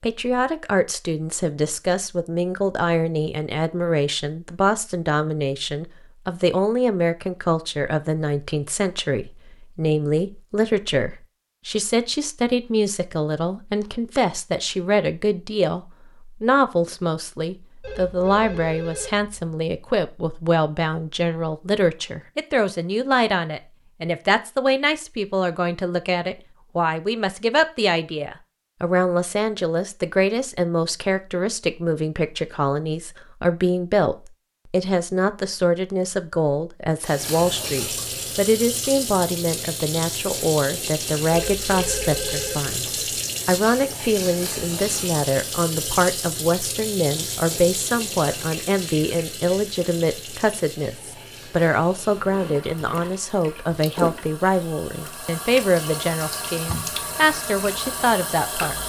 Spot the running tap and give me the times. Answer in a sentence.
You can hear the running tap from 37.0 to 58.8 s.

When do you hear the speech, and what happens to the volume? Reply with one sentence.
You can hear the speech from 0.0 to 58.8 s, at a steady volume.